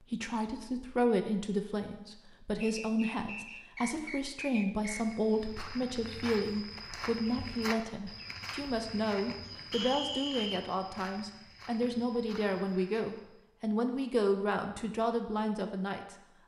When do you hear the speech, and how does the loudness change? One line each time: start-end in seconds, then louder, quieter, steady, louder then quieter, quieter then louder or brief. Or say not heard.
0.1-16.1 steady.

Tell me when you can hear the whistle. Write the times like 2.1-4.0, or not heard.
2.6-5.2, 9.7-10.7.